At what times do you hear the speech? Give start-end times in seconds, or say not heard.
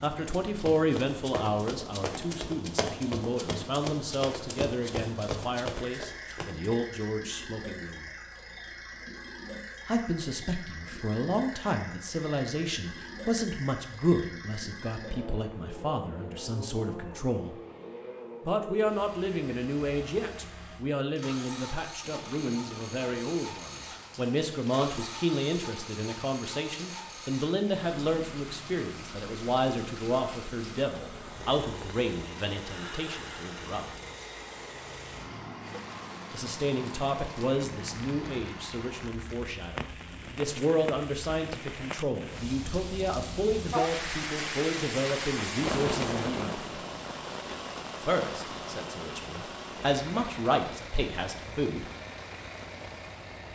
0.0-8.1, 9.8-17.6, 18.4-33.9, 36.3-46.6, 48.0-51.9.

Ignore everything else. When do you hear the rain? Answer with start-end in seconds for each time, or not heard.
22.0-53.4.